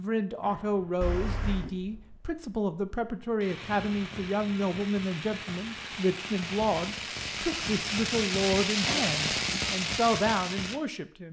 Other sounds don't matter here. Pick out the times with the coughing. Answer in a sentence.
The coughing can be heard from 1.0 to 1.7 s and from 8.8 to 9.7 s.